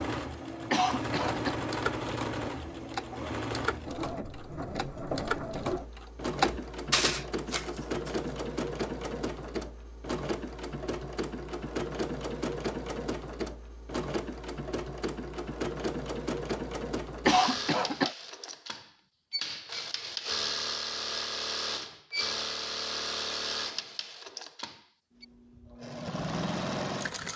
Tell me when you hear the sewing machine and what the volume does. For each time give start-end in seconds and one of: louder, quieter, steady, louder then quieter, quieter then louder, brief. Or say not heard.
0.0-27.3 steady.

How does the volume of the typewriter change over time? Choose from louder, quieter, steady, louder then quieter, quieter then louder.
louder.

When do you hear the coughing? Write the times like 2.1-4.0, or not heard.
0.7-1.6, 17.2-18.1.